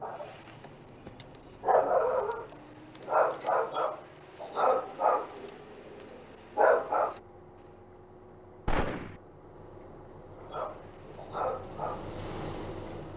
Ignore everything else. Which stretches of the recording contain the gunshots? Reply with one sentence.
You can hear the gunshots from 8.7 to 9.2 s.